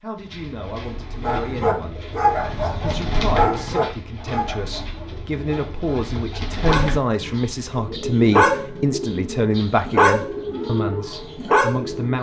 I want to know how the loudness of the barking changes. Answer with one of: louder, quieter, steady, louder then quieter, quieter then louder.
quieter then louder.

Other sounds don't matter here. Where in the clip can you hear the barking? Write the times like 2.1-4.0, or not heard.
1.2-11.8.